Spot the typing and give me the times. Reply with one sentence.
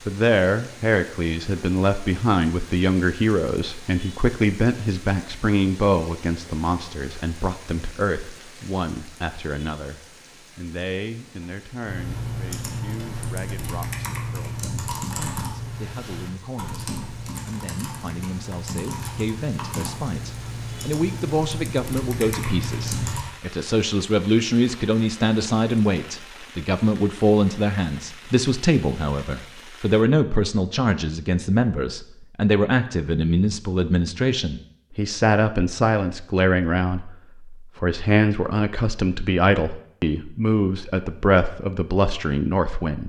You can hear the typing from 11.8 to 23.2 s.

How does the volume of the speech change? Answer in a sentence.
The loudness of the speech goes down, then up.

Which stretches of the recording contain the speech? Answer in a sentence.
The speech can be heard from 0.1 to 43.0 s.